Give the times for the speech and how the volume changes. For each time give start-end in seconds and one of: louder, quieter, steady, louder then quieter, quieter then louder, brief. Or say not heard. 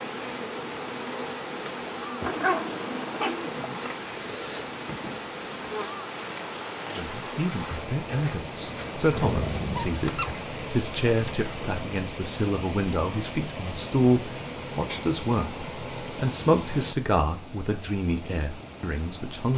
7.0-19.5 steady.